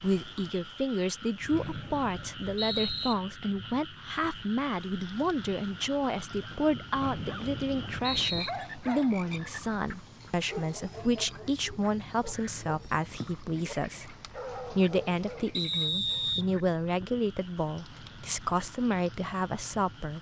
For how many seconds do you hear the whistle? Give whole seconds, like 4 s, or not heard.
4 s.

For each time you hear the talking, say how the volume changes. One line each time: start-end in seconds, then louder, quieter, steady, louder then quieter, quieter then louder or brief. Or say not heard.
0.0-20.1 steady.